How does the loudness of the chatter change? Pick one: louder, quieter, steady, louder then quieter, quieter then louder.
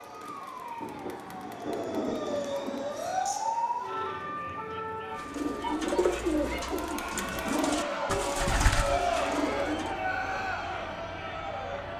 louder.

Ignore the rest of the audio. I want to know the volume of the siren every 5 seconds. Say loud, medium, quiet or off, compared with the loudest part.
loud, medium, medium.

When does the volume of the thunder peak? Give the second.
2 s.